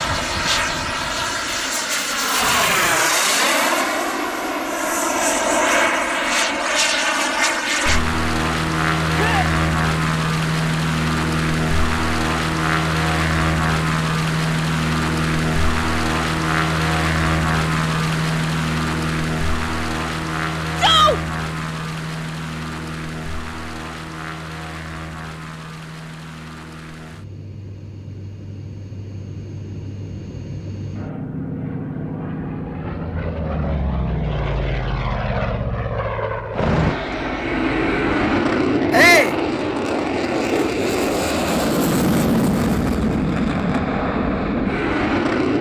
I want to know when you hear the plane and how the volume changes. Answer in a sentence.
You can hear the plane from 0.0 to 45.5 s, getting quieter then louder.